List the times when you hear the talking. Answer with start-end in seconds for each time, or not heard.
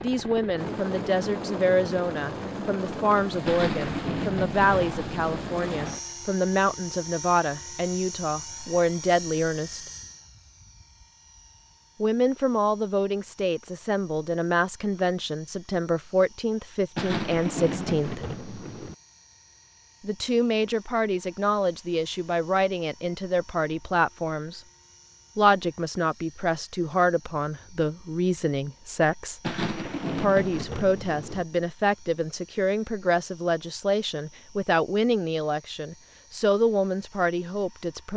0.0-9.8, 12.0-18.3, 20.0-24.6, 25.4-29.4, 30.0-38.1.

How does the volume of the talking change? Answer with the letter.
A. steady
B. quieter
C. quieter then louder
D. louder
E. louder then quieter
A.